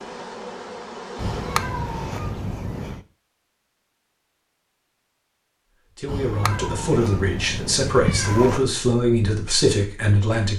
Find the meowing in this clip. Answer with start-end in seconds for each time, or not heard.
1.1-3.0, 6.0-8.7.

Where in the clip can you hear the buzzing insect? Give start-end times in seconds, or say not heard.
0.0-2.3.